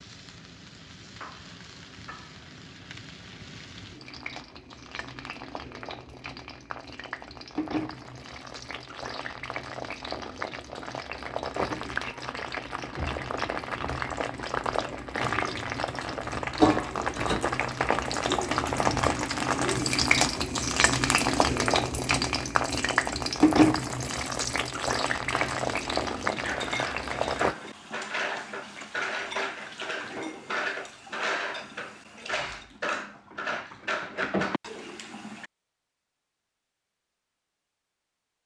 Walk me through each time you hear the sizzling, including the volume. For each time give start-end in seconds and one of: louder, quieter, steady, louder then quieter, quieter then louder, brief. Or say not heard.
0.0-27.6 louder.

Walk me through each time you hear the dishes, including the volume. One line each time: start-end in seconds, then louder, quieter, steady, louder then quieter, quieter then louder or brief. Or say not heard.
25.2-35.5 steady.